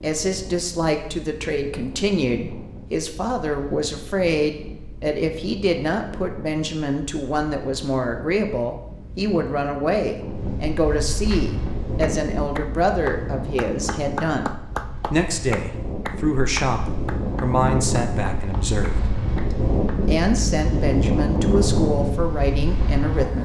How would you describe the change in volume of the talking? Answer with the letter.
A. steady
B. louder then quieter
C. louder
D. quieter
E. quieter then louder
A.